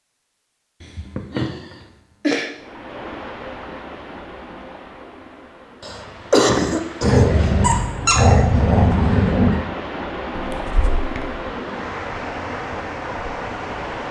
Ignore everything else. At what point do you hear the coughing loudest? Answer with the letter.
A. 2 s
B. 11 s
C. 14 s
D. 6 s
D.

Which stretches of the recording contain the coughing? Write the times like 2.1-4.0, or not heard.
0.8-2.5, 5.8-7.5, 10.3-11.5.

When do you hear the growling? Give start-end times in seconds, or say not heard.
7.0-9.6.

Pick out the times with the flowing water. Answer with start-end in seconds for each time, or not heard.
2.5-14.0.